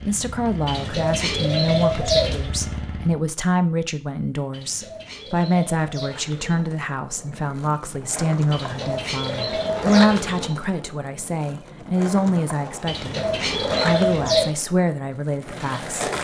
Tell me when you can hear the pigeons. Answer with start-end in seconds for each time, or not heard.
0.7-2.5, 4.5-6.5, 8.5-10.6, 12.8-14.5.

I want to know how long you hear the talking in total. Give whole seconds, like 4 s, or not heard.
16 s.